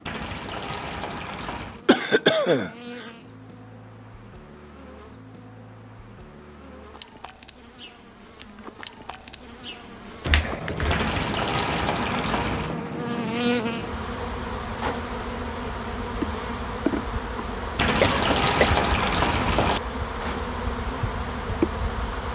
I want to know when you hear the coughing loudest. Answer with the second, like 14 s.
2 s.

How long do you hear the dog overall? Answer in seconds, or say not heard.
not heard.